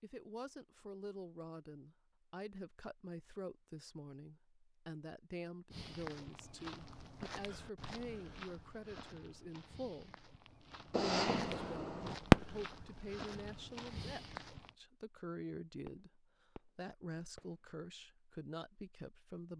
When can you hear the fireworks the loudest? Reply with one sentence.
The loudest moment of the fireworks is at 12 seconds.